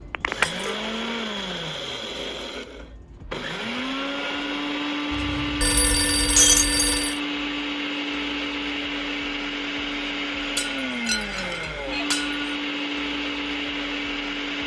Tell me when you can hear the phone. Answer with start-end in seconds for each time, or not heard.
0.1-0.8, 5.1-7.2, 11.3-12.1.